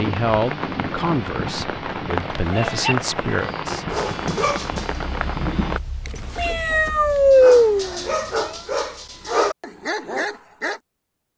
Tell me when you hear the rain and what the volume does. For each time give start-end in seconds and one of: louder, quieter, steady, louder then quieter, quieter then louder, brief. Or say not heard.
0.0-5.8 steady.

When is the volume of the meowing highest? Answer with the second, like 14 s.
7 s.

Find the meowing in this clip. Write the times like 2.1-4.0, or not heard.
2.4-2.9, 6.0-8.5.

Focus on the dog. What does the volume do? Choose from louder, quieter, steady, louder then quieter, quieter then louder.
quieter then louder.